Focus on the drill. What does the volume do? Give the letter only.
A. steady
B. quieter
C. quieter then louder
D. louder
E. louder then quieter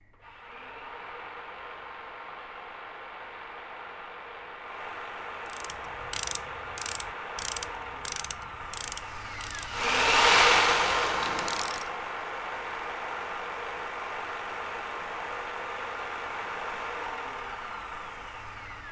E.